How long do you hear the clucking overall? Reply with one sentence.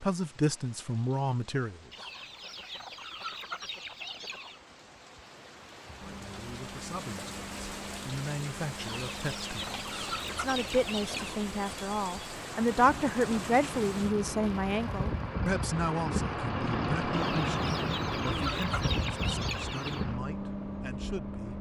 You can hear the clucking for 8 seconds altogether.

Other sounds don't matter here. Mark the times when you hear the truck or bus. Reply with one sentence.
You can hear the truck or bus from 6.0 to 21.5 s.